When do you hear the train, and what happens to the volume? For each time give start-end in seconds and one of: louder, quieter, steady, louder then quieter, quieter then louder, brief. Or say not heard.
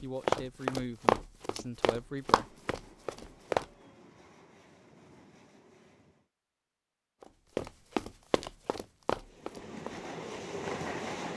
2.0-6.3 steady
9.1-11.3 brief.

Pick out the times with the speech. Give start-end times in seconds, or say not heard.
0.0-2.5.